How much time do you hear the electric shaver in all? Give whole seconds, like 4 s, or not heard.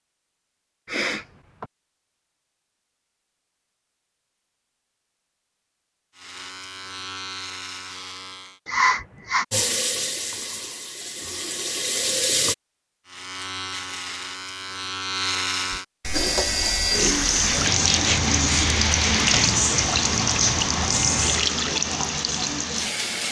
11 s.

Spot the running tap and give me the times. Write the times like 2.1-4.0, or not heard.
9.5-12.6, 16.1-23.2.